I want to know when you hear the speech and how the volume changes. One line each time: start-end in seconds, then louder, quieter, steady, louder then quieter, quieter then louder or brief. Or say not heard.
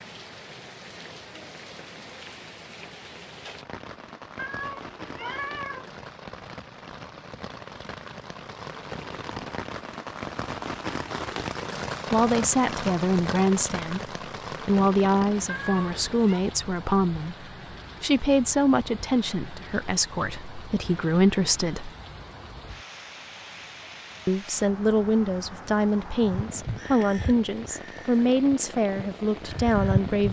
12.1-21.9 steady
24.2-30.2 steady.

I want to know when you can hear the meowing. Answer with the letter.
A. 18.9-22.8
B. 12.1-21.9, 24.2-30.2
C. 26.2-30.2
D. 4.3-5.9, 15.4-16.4
D.